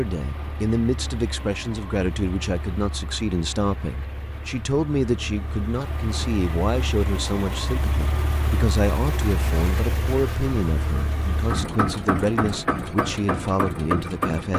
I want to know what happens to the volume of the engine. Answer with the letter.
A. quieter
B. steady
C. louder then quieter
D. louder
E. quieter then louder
D.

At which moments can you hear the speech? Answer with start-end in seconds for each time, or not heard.
0.0-14.5.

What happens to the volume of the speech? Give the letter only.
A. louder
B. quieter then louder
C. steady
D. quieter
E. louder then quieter
C.